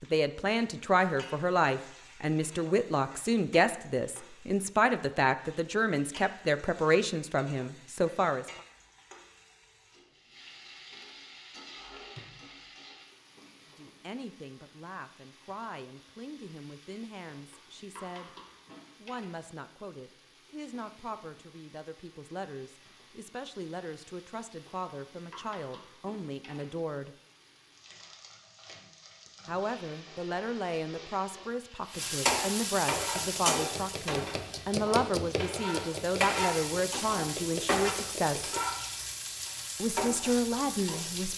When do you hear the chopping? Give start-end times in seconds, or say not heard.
32.9-38.6.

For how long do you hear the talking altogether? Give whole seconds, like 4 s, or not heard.
32 s.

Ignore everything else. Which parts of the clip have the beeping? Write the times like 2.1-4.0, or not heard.
not heard.